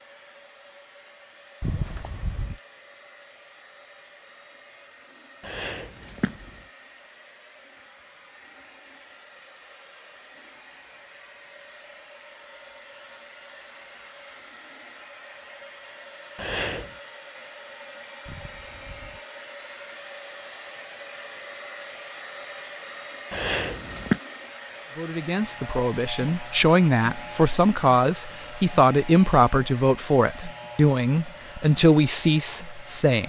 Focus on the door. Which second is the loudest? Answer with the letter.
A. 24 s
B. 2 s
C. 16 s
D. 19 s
B.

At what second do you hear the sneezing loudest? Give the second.
24 s.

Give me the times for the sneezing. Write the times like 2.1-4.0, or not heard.
5.4-6.5, 16.4-16.9, 23.3-24.2.